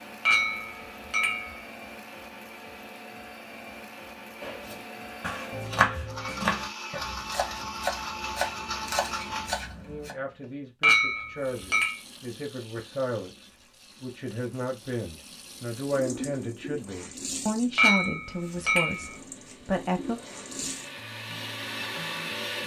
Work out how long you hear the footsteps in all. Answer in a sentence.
You can't hear the footsteps here.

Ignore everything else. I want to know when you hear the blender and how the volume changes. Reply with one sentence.
You can hear the blender from 0.0 to 10.6 s, getting louder; and from 18.3 to 22.6 s, getting louder.